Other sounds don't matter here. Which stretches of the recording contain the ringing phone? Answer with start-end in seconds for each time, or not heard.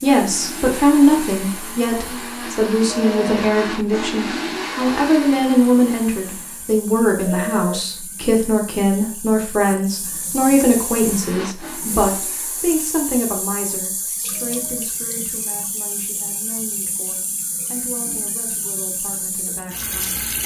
2.9-3.4, 7.2-7.8, 14.3-14.8.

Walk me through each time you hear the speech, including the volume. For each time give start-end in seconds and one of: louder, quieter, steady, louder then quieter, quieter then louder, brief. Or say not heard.
0.0-20.3 quieter.